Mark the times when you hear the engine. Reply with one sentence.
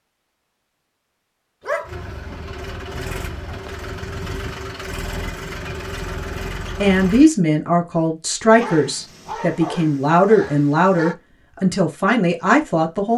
The engine can be heard from 1.8 to 7.3 s.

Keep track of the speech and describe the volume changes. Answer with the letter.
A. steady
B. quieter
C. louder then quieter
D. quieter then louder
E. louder
A.